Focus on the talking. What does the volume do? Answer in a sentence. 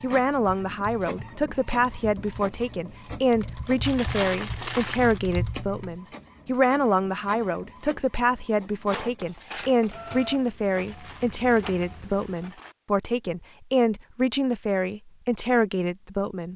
The volume of the talking stays about the same.